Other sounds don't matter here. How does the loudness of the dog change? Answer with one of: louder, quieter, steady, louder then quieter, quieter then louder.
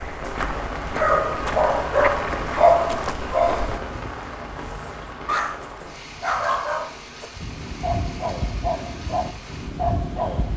quieter.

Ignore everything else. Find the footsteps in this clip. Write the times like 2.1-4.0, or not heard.
0.0-3.8.